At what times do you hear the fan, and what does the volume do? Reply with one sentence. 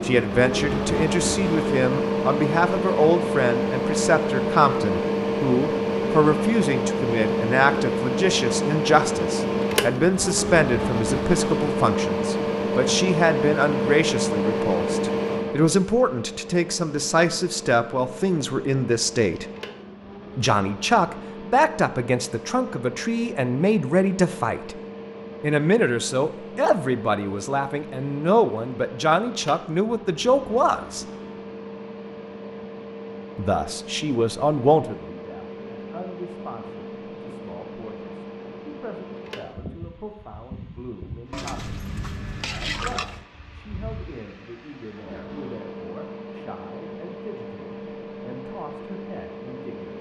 You can hear the fan from 0.0 to 49.9 s, getting quieter.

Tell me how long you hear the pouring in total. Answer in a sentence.
The pouring can be heard for 2 seconds in total.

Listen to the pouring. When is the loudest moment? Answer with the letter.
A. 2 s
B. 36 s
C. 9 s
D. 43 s
D.